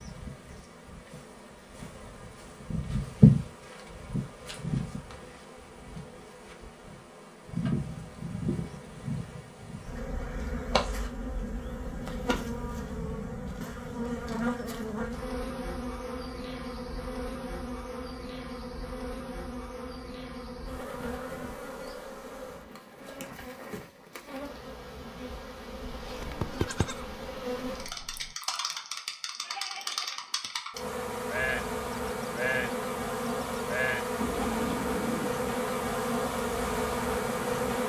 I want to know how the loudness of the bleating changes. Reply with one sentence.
The loudness of the bleating goes down, then up.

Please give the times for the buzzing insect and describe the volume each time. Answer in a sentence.
You can hear the buzzing insect from 0.0 to 37.8 s, getting quieter then louder.